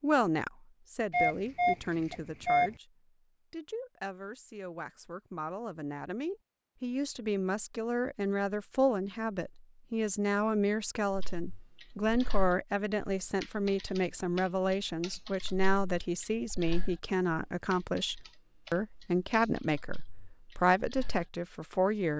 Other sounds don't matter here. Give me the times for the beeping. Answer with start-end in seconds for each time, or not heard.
1.1-2.7.